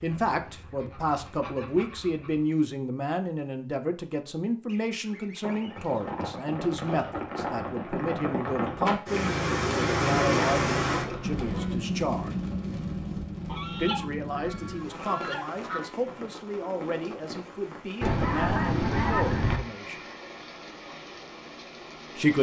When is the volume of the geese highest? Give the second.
19 s.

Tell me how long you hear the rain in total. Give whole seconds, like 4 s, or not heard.
17 s.